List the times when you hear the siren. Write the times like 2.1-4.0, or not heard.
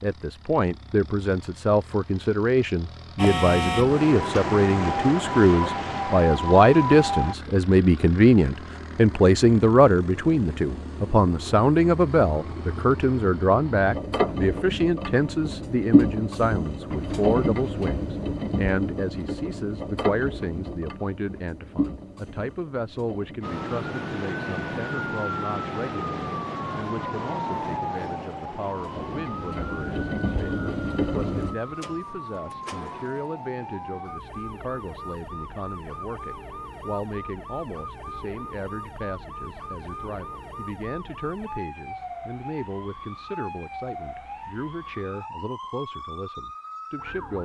3.1-7.3, 23.4-47.4.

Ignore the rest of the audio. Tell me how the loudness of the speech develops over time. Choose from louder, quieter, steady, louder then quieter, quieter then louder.
quieter.